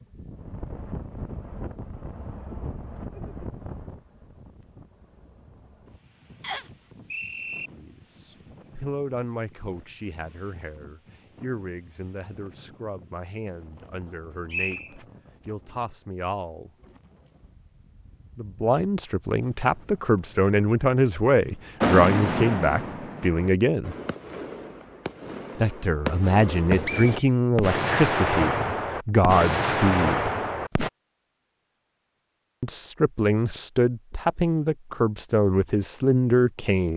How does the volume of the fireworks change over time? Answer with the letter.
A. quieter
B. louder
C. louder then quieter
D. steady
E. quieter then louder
E.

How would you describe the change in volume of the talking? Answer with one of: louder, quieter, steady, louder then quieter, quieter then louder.
louder.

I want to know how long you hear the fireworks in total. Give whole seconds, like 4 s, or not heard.
9 s.